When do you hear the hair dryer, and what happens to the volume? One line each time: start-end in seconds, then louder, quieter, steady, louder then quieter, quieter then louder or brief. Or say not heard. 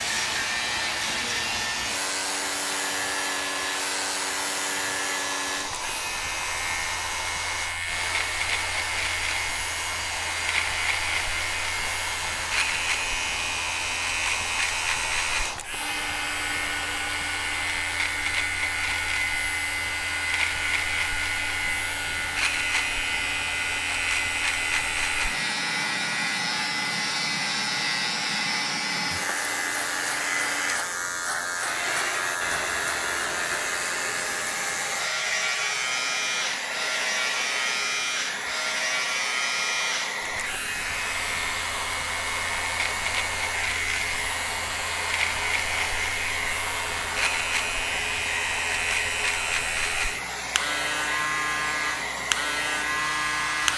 0.0-53.7 steady.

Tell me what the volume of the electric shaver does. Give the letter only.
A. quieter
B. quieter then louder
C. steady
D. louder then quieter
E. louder
C.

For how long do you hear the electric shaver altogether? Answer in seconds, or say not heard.
54 s.